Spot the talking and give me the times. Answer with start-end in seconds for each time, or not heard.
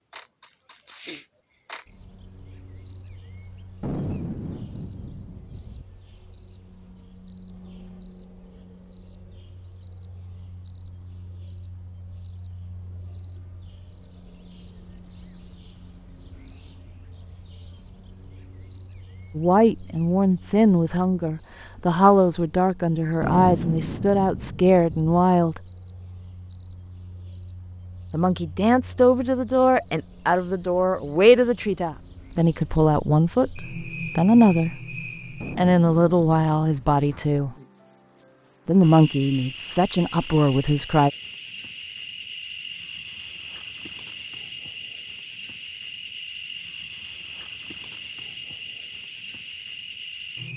19.4-25.6, 28.1-35.0, 35.5-37.5, 38.6-41.1.